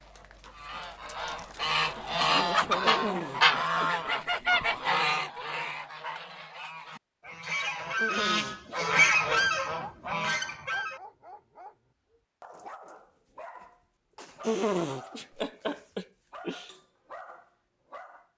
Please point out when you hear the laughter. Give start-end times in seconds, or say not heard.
2.8-4.2, 8.0-9.1, 14.4-16.7.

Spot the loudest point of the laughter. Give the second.
15 s.